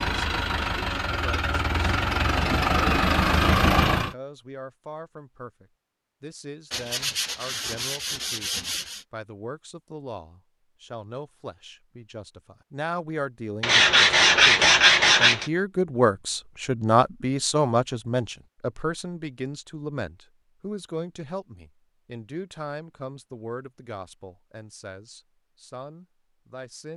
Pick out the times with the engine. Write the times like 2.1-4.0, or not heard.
0.0-4.2.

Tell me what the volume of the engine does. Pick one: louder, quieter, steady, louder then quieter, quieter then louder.
louder.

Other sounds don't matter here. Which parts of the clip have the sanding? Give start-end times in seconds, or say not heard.
6.7-9.1, 13.6-15.5.